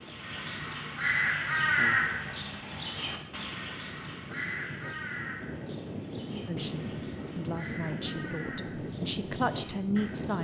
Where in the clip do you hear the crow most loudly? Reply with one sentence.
The loudest moment of the crow is at 2 seconds.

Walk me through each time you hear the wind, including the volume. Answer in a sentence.
The wind can be heard from 0.0 to 10.3 s, getting louder.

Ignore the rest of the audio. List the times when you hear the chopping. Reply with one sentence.
You can't hear the chopping here.